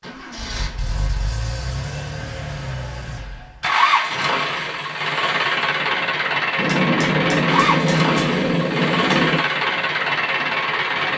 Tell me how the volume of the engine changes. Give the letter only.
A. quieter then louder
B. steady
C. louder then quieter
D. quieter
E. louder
E.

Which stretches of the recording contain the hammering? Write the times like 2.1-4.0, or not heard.
6.5-9.4.